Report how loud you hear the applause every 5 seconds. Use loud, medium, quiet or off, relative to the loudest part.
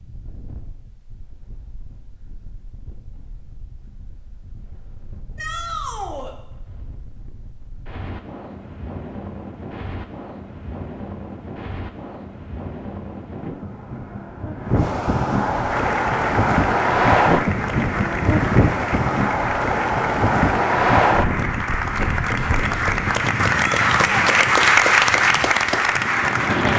off, off, off, medium, loud, loud.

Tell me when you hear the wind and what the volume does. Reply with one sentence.
The wind can be heard from 0.0 to 26.7 s, getting louder then quieter.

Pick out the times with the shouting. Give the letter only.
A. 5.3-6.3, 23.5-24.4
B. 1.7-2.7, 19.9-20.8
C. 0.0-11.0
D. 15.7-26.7
A.